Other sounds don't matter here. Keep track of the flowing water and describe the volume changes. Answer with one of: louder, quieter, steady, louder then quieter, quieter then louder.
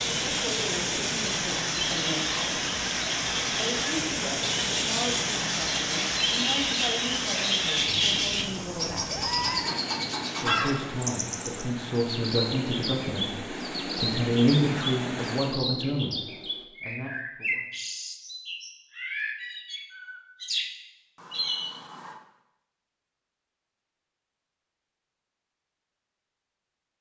quieter.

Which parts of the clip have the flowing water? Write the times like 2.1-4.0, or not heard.
0.0-15.6.